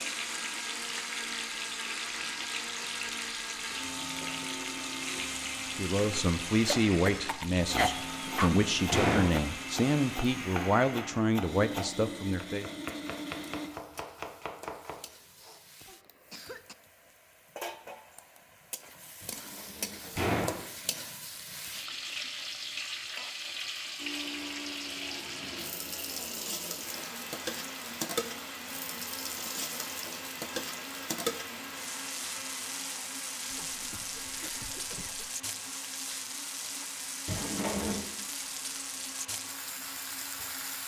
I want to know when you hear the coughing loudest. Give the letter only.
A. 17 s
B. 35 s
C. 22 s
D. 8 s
D.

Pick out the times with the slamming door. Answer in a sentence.
You can hear the slamming door from 8.0 to 9.4 s, from 19.2 to 21.1 s and from 37.2 to 38.0 s.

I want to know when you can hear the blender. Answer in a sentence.
You can hear the blender from 0.0 to 13.7 s and from 23.9 to 40.8 s.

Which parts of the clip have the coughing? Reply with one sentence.
The coughing can be heard from 6.8 to 8.5 s, from 15.8 to 16.8 s and from 33.5 to 35.3 s.